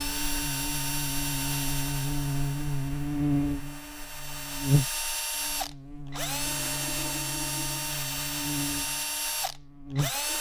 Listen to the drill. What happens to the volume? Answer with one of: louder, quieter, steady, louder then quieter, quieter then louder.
quieter then louder.